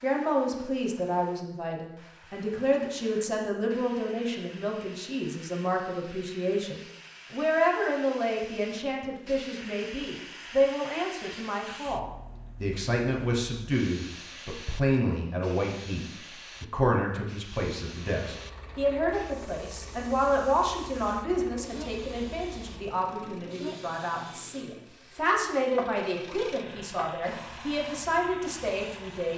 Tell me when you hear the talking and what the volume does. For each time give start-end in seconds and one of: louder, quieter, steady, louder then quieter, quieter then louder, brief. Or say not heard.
0.0-29.3 steady.